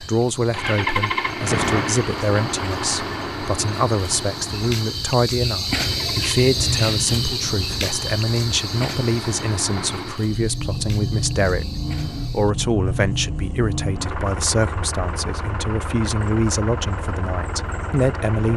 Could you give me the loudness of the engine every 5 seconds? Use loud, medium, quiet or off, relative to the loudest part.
loud, medium, loud, medium.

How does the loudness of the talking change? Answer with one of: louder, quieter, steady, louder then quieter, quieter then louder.
steady.